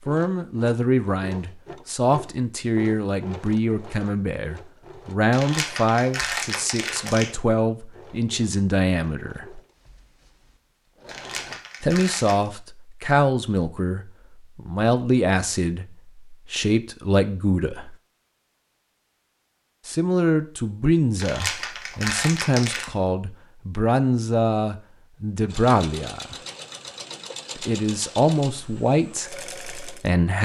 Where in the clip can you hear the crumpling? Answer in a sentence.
The crumpling can be heard from 5.3 to 7.3 s, from 11.1 to 12.5 s and from 21.1 to 22.9 s.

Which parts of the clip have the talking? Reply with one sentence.
You can hear the talking from 0.1 to 9.6 s, from 11.8 to 17.9 s, from 19.9 to 26.4 s and from 27.6 to 30.3 s.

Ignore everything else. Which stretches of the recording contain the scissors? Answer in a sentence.
The scissors can't be heard in this clip.